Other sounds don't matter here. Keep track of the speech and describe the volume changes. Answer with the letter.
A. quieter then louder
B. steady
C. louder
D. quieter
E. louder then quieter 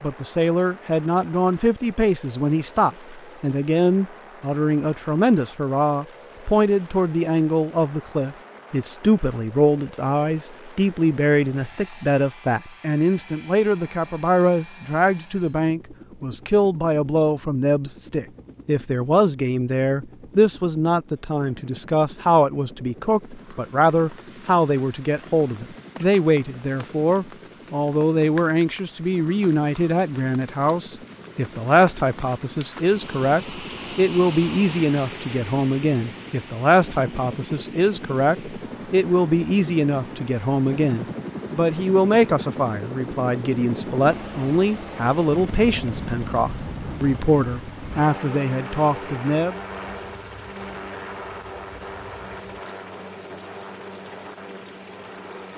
B.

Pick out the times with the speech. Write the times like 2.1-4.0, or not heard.
0.0-49.5.